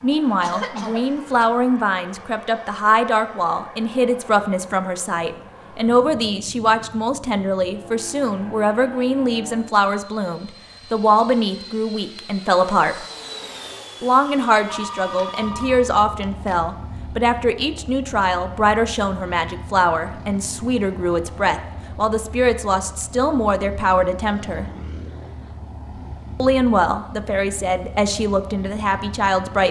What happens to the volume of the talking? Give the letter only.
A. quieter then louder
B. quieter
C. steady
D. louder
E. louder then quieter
C.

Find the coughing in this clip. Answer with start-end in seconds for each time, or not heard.
0.4-1.4.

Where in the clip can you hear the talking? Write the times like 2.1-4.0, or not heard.
0.0-13.1, 14.0-24.6, 26.4-29.6.